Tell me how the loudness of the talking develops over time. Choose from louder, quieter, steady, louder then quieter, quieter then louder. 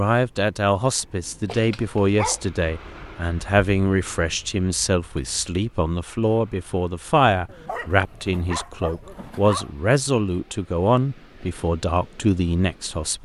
steady.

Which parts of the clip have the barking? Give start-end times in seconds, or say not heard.
1.5-2.4, 7.5-9.7.